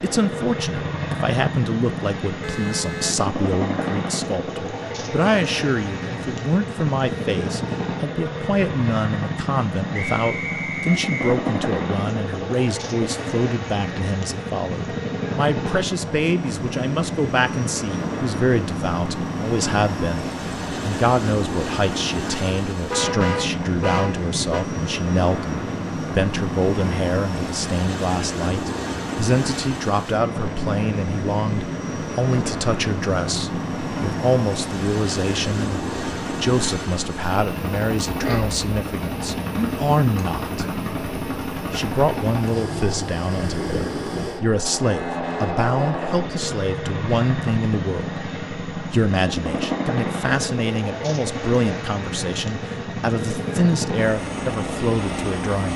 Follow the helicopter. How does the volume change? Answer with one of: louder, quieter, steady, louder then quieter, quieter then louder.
steady.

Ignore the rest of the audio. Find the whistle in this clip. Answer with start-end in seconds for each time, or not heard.
9.9-11.3.